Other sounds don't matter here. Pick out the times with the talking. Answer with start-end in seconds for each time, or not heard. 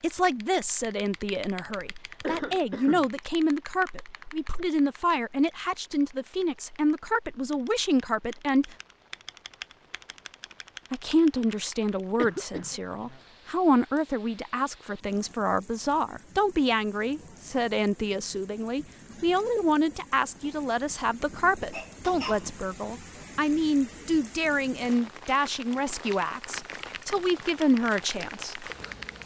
0.0-8.8, 10.9-28.6.